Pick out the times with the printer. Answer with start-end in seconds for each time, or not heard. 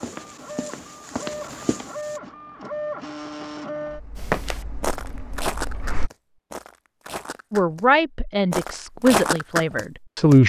0.0-6.1.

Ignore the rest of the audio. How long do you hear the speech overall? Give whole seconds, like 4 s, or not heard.
3 s.